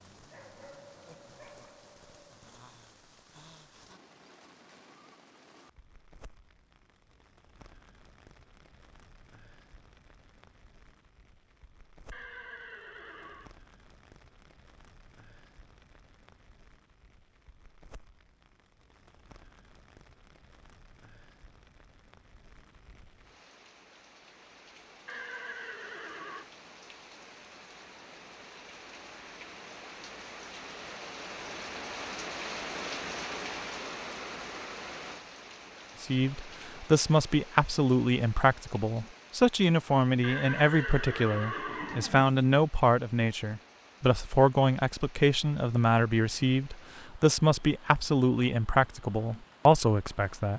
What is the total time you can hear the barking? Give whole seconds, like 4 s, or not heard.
2 s.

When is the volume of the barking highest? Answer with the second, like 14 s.
1 s.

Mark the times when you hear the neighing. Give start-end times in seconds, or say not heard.
12.1-13.6, 25.1-26.4, 40.2-42.2.